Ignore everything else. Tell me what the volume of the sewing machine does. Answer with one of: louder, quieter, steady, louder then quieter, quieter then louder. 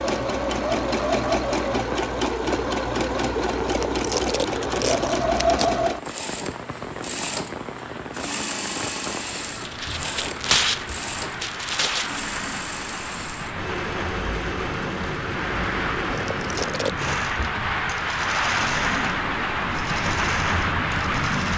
quieter.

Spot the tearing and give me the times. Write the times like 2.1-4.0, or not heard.
3.6-5.7, 9.7-12.2, 16.1-17.2.